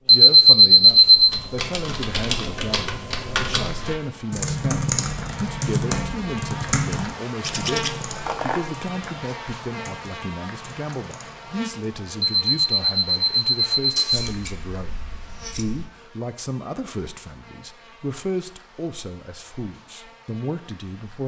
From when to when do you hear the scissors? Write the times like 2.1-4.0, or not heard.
7.4-8.8, 14.2-15.9.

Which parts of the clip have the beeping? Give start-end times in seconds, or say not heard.
0.1-1.4, 12.2-14.2.